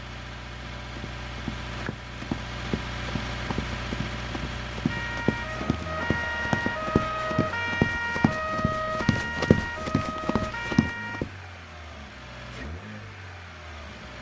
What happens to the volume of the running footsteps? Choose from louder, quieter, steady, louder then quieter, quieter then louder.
louder.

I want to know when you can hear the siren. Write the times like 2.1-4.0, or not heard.
4.8-11.2.